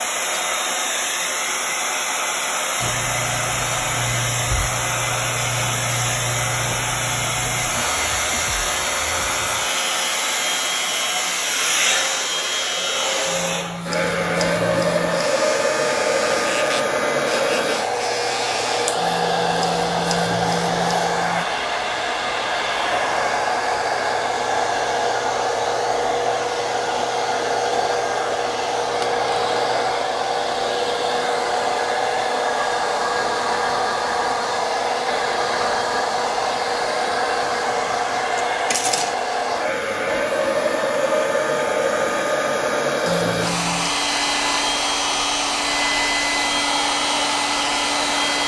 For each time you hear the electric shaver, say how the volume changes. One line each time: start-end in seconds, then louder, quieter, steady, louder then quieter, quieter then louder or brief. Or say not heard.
2.8-21.4 steady
43.0-48.4 steady.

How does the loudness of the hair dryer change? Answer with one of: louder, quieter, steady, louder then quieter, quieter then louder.
steady.